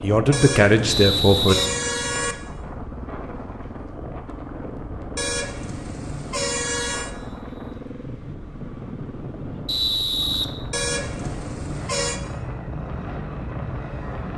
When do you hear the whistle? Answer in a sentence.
You can hear the whistle from 0.8 to 2.4 s, from 7.3 to 7.8 s and from 9.7 to 10.4 s.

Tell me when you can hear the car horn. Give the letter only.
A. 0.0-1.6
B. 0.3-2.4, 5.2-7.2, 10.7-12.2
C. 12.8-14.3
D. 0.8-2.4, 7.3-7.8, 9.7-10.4
B.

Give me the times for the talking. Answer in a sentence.
The talking can be heard from 0.0 to 1.6 s.